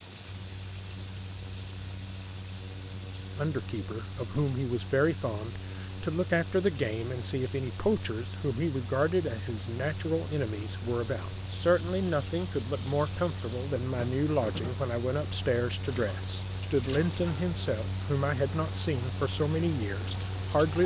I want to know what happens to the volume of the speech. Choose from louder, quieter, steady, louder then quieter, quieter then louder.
steady.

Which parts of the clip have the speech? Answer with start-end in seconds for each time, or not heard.
3.4-20.8.